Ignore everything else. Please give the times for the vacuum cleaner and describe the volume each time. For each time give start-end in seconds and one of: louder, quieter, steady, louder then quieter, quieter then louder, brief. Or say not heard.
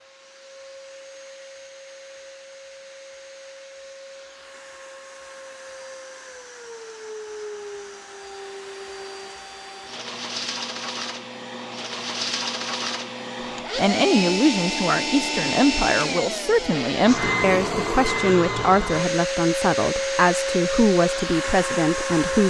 0.0-22.4 louder.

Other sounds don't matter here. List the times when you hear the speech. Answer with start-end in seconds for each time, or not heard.
13.8-22.4.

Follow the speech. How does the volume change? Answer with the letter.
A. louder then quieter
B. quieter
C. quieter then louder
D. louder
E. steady
E.